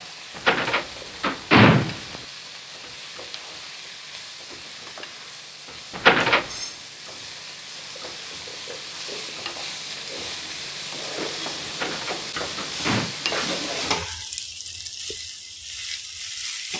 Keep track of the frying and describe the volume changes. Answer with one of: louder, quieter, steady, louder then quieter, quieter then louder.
louder.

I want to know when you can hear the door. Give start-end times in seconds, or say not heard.
0.3-2.2, 6.0-6.5, 11.7-13.2.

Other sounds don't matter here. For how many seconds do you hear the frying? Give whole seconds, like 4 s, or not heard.
17 s.